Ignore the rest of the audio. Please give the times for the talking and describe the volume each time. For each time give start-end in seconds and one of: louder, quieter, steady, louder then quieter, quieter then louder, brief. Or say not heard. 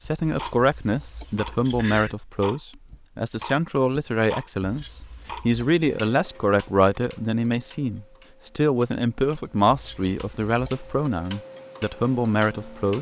0.0-12.9 steady.